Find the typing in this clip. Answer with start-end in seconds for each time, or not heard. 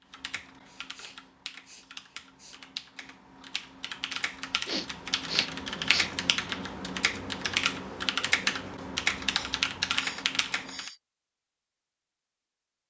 0.1-10.9.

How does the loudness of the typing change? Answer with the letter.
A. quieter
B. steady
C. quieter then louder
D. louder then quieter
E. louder
E.